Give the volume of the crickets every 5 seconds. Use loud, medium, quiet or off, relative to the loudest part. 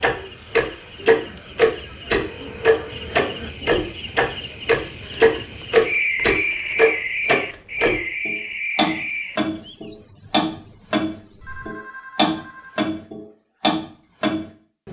loud, loud, medium.